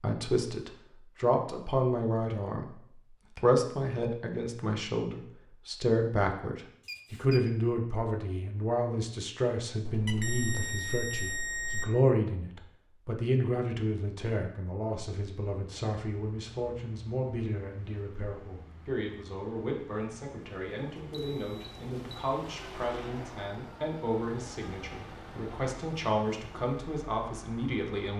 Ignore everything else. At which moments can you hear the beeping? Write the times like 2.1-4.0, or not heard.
6.8-7.5, 9.8-11.8, 21.1-22.2.